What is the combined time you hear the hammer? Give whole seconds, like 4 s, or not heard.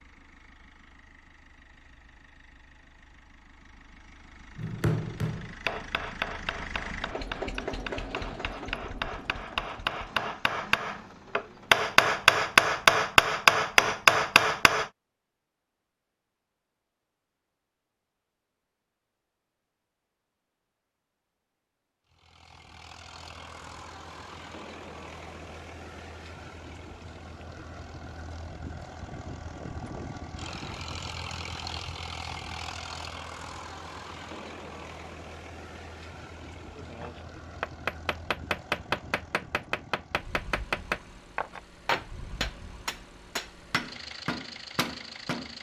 19 s.